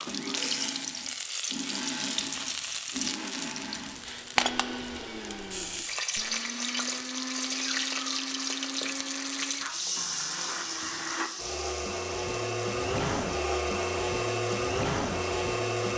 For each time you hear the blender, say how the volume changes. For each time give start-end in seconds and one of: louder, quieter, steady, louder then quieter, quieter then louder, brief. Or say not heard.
0.1-15.9 louder.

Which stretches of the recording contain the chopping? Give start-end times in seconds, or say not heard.
not heard.